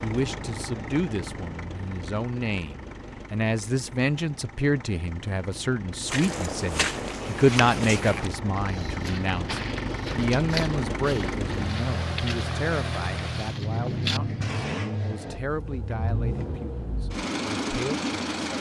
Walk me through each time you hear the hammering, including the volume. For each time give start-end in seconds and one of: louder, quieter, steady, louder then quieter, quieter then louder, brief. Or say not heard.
not heard.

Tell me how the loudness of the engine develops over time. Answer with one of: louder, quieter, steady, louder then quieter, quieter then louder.
louder.